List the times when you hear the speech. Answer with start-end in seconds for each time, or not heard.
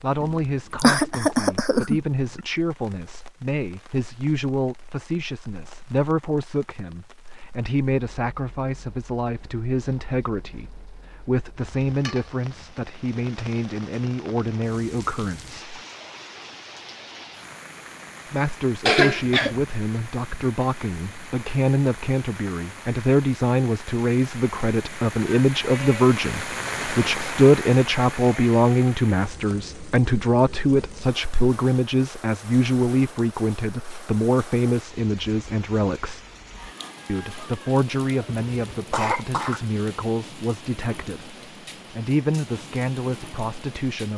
0.0-15.8, 18.3-36.2, 37.0-44.1.